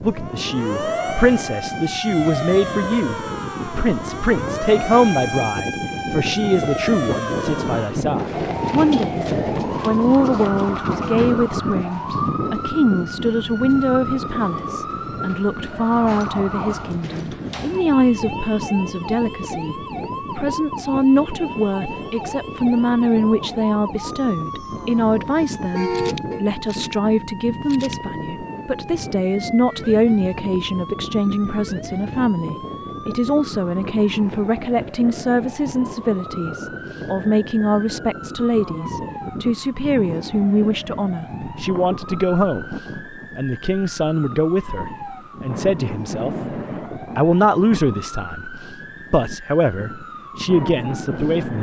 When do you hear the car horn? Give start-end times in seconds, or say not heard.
25.7-26.4.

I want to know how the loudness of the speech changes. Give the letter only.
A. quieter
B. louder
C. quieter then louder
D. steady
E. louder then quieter
D.